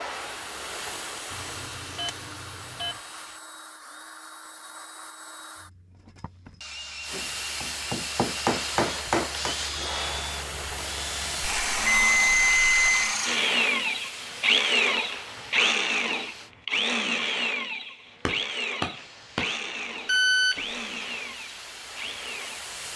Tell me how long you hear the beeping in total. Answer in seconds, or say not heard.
4 s.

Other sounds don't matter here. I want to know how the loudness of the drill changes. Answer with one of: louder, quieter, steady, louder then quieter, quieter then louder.
louder then quieter.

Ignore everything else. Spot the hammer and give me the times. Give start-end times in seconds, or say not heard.
7.1-9.6, 18.2-19.6.